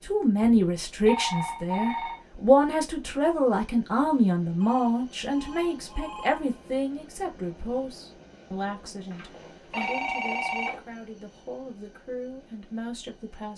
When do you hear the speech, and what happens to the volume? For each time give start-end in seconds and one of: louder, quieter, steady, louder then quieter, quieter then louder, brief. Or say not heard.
0.1-13.5 quieter.